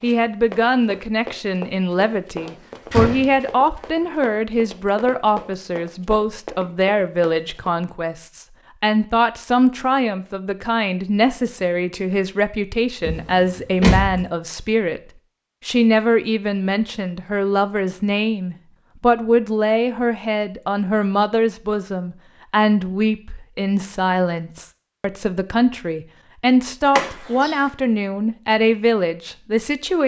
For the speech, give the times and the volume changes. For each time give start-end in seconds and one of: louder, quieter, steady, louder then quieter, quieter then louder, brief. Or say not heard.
0.0-15.0 steady
15.7-30.0 steady.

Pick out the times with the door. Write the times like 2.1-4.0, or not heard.
2.5-3.8, 13.0-14.2, 26.9-27.6.